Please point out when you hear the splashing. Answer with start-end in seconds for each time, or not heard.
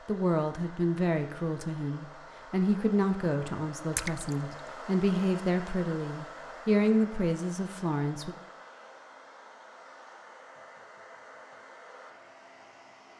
3.9-4.5.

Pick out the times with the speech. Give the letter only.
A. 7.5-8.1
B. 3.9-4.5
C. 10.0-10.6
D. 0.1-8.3
D.